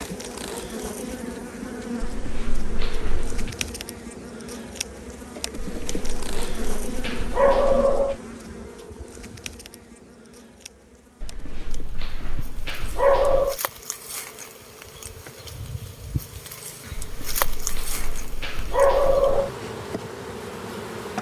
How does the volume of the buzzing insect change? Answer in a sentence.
The loudness of the buzzing insect goes down, then up.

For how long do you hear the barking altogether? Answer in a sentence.
You can hear the barking for 9 seconds altogether.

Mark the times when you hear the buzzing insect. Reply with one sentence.
The buzzing insect can be heard from 0.0 to 21.1 s.